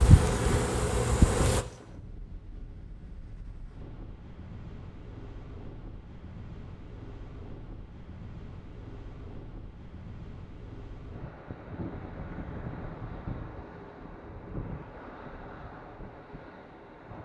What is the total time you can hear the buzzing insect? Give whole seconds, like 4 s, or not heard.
2 s.